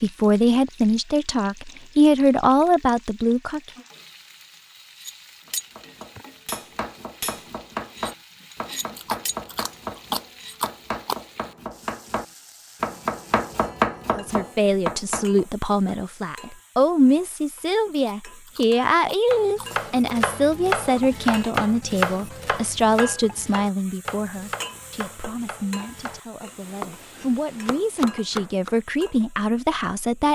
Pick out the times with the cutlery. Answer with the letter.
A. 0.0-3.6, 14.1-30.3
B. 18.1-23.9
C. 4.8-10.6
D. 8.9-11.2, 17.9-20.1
C.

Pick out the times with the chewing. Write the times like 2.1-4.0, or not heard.
8.9-11.2, 17.9-20.1.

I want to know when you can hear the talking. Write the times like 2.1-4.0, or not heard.
0.0-3.6, 14.1-30.3.